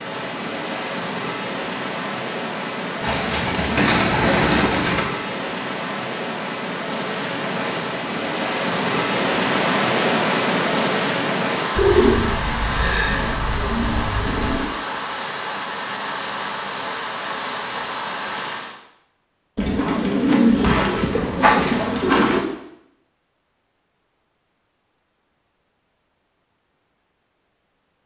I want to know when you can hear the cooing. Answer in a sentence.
You can hear the cooing from 3.0 to 5.0 s, from 11.8 to 14.7 s and from 19.6 to 22.4 s.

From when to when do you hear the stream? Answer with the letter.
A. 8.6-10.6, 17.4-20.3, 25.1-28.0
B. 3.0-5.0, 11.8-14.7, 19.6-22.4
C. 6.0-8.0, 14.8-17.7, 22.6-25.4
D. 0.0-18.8
D.